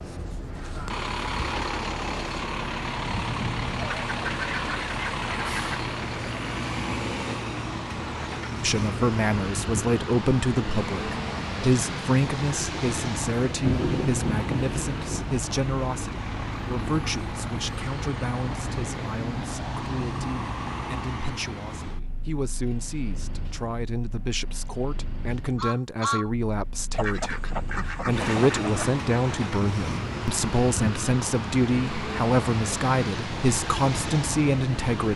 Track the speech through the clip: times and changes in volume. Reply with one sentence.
The speech can be heard from 8.6 to 35.1 s, getting quieter then louder.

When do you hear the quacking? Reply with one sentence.
The quacking can be heard from 3.8 to 5.8 s and from 26.9 to 28.9 s.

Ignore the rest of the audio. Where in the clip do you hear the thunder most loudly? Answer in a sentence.
The loudest moment of the thunder is at 14 seconds.